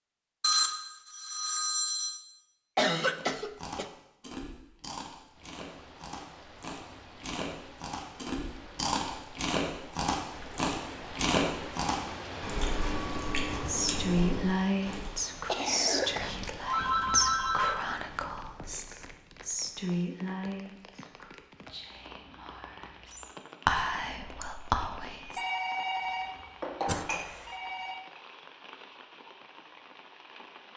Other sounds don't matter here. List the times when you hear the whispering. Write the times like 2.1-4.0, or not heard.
13.7-25.4.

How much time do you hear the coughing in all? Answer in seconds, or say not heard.
3 s.